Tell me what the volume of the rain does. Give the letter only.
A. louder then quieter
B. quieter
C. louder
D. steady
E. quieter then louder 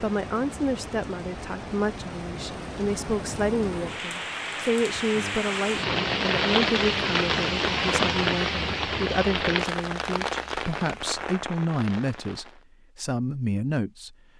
A.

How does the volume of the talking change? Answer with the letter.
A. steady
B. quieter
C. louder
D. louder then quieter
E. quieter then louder
A.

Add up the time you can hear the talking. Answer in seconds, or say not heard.
14 s.